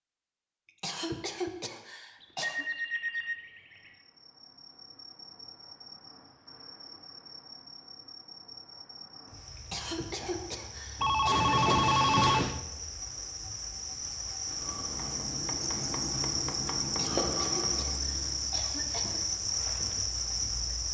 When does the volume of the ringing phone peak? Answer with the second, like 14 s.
12 s.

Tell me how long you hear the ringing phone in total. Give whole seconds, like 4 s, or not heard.
3 s.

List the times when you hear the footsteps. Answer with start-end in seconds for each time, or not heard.
not heard.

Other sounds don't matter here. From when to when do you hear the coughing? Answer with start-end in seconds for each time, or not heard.
0.7-2.6, 9.6-12.0, 16.9-19.2.